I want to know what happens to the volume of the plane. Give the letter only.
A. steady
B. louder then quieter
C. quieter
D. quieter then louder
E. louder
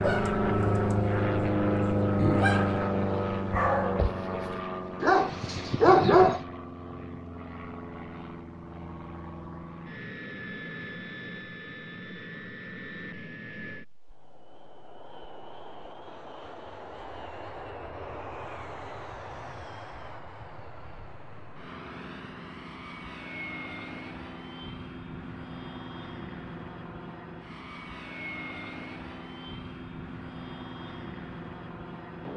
C.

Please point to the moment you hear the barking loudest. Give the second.
6 s.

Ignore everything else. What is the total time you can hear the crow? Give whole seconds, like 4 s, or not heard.
not heard.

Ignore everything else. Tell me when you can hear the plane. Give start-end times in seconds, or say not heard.
0.0-32.3.